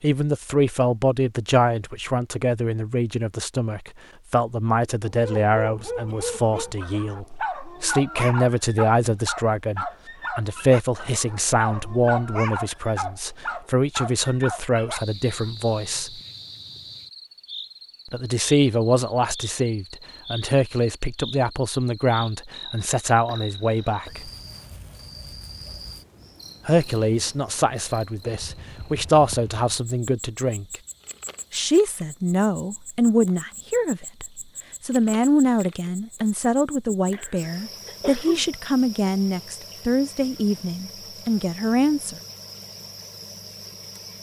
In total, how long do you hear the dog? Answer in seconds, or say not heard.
10 s.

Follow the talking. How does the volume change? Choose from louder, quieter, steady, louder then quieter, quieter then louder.
steady.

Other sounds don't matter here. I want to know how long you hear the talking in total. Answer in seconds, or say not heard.
37 s.